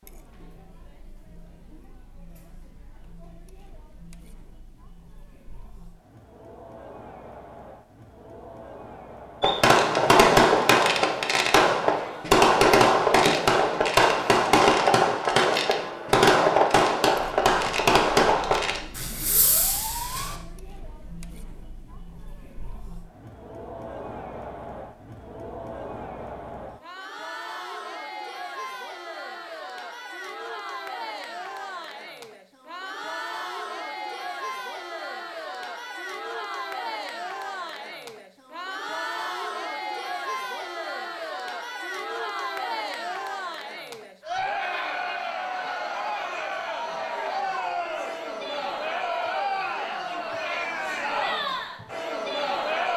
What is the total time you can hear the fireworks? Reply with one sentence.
You can hear the fireworks for 11 seconds altogether.